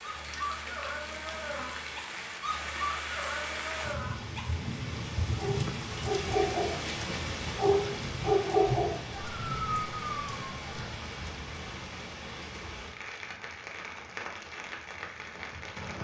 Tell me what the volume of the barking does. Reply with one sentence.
The volume of the barking goes up.